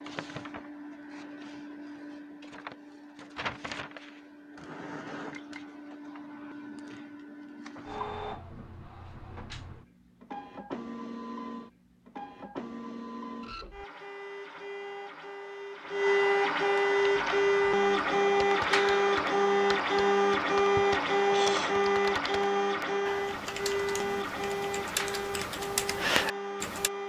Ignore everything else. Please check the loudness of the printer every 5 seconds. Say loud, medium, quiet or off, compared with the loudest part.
quiet, quiet, quiet, loud, loud, medium.